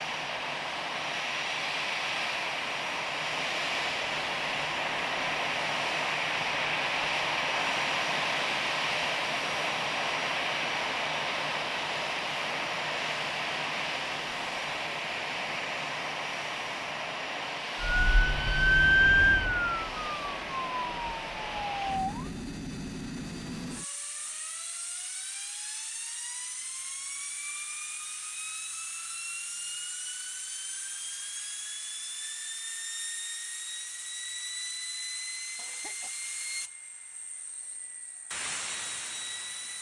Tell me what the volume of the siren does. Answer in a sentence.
The volume of the siren goes down.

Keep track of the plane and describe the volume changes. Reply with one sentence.
The volume of the plane goes down.